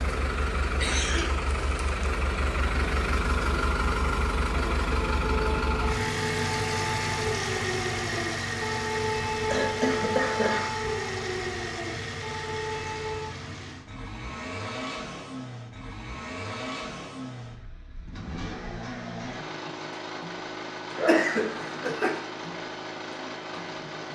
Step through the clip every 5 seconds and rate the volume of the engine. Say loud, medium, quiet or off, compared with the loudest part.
loud, loud, medium, medium, medium.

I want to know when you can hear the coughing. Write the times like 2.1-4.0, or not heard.
0.8-2.1, 9.5-10.7, 20.9-22.1.